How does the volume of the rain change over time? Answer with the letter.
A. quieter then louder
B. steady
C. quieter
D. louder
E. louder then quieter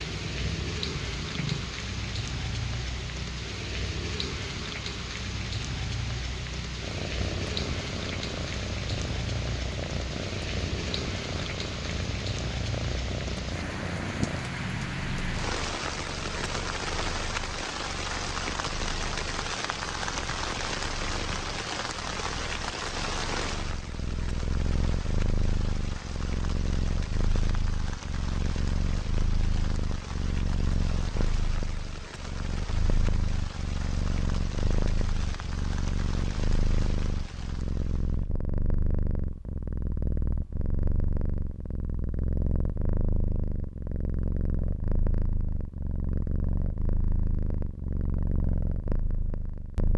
C.